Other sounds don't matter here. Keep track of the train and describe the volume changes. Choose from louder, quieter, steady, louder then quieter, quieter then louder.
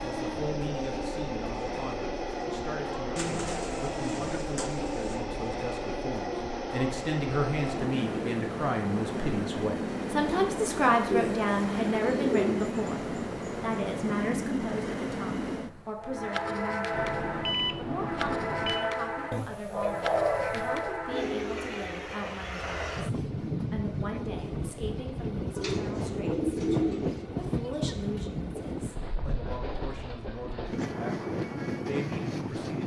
steady.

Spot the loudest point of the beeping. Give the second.
18 s.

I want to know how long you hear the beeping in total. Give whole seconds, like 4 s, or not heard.
2 s.